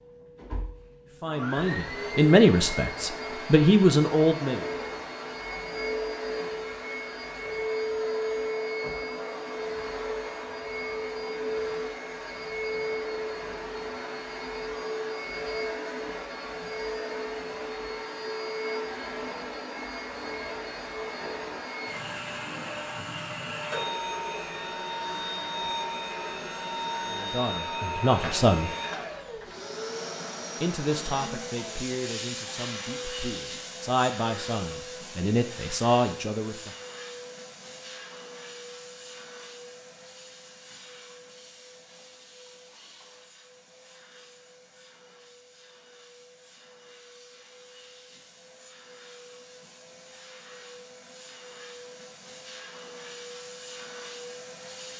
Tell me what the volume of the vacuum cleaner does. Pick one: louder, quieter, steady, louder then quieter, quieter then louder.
quieter.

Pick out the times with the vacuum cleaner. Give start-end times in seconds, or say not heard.
0.0-54.9.